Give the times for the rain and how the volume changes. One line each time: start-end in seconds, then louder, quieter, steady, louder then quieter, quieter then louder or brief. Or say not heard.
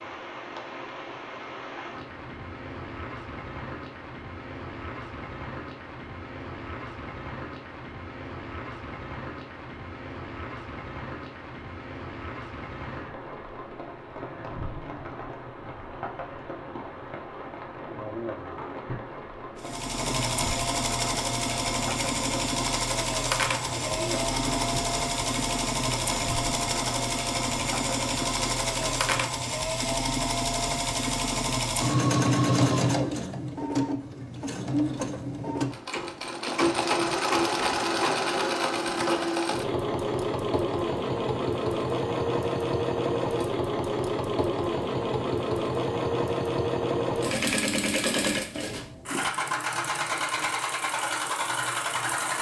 0.0-29.3 steady.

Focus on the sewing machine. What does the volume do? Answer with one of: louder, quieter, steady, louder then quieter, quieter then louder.
steady.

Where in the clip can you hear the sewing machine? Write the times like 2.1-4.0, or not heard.
19.6-52.3.